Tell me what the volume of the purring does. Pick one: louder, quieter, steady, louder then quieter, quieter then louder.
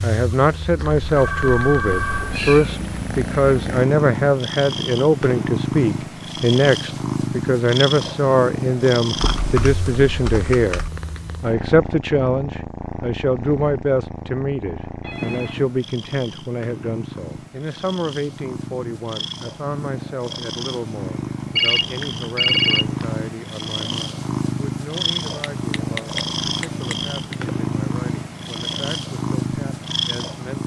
quieter then louder.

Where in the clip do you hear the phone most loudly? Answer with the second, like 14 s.
23 s.